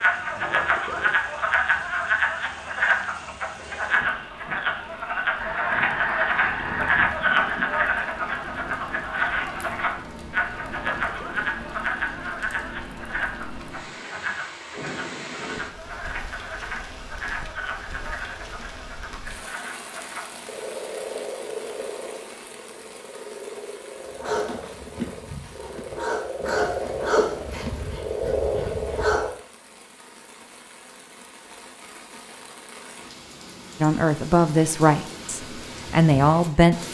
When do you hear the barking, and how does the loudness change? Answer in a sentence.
You can hear the barking from 24.1 to 29.2 s, getting louder then quieter.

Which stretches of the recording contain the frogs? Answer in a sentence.
You can hear the frogs from 0.0 to 29.3 s.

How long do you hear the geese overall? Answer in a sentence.
You can hear the geese for 2 seconds altogether.